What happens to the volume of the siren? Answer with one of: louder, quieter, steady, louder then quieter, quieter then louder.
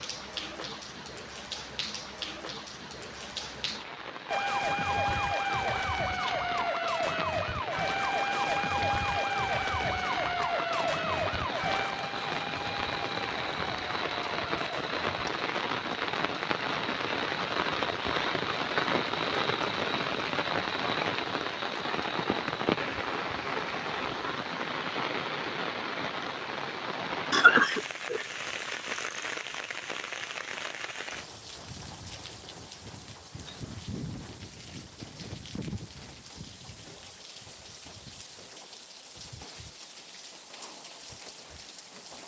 quieter.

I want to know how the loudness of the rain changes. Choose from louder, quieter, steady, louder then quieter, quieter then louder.
louder then quieter.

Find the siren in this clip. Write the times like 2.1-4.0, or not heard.
4.2-15.2.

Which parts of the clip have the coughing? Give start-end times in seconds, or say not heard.
27.3-28.2.